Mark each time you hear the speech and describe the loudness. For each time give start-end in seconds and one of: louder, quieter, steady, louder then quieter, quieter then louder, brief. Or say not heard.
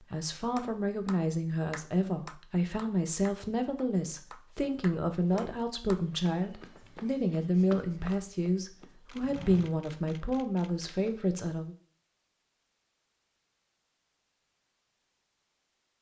0.0-11.8 steady.